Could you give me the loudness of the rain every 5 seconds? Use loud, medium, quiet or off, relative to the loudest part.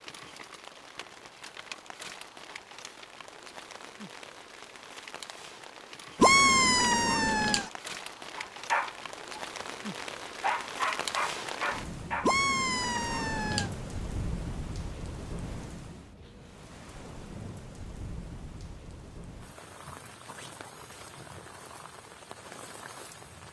medium, loud, loud, medium, medium.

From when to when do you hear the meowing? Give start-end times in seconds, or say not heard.
6.2-7.7, 12.2-13.7.